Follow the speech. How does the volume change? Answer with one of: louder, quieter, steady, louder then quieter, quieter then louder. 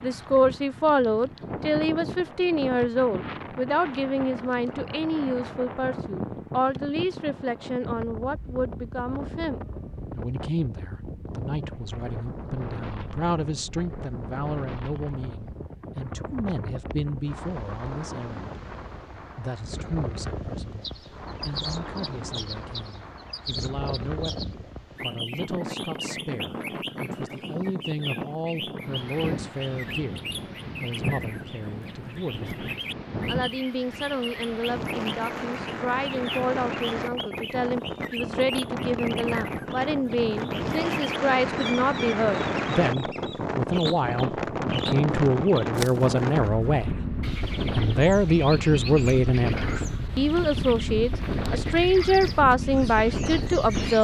quieter then louder.